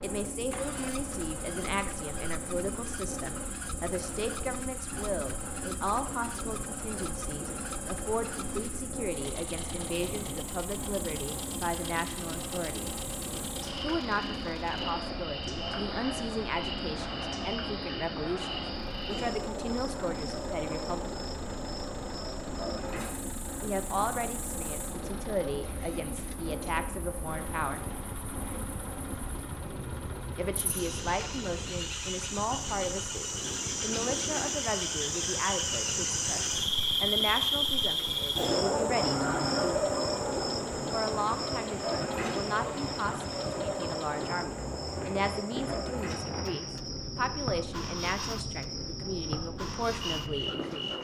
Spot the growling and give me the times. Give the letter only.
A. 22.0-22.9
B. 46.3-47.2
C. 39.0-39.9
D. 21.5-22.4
C.